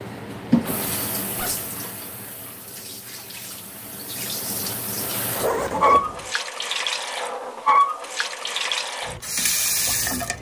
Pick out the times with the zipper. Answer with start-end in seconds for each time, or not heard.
0.7-1.6, 5.4-6.3.